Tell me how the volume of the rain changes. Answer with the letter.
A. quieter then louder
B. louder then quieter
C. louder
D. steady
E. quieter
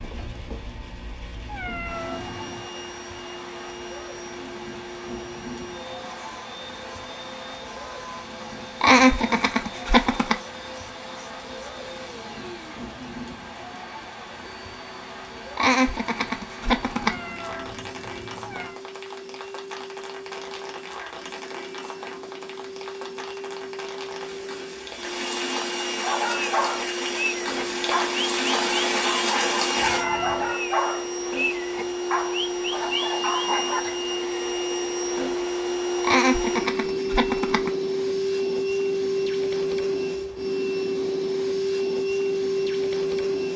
C.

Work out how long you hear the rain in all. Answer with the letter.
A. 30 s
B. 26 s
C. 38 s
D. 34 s
A.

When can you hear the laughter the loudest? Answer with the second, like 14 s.
9 s.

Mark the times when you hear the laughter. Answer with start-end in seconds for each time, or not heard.
8.8-10.3, 15.6-17.1, 36.0-37.7.